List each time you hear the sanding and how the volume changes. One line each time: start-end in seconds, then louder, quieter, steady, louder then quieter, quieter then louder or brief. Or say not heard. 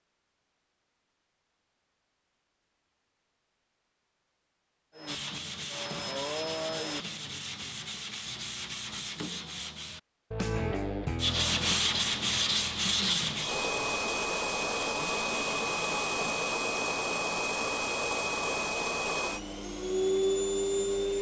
5.0-16.6 louder then quieter.